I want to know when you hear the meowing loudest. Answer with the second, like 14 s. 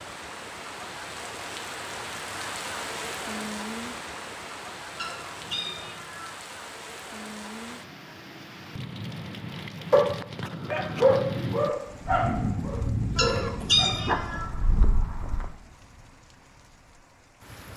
14 s.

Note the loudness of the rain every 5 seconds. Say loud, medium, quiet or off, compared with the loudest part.
loud, medium, loud, quiet.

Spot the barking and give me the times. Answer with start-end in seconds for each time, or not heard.
9.9-15.5.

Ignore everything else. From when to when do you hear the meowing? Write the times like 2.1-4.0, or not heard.
5.0-6.2, 13.2-14.4.